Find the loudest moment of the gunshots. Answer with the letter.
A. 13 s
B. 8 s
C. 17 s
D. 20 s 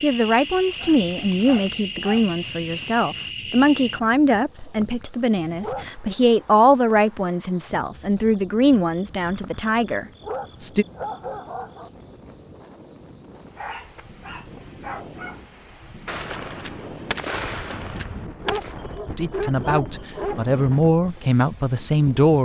C.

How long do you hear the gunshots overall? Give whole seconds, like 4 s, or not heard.
3 s.